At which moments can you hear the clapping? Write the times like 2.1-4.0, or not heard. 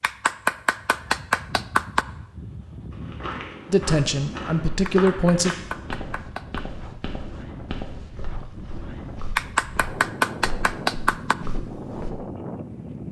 0.0-2.0, 4.8-6.7, 9.3-11.3.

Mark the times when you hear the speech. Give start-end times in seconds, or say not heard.
3.6-5.6.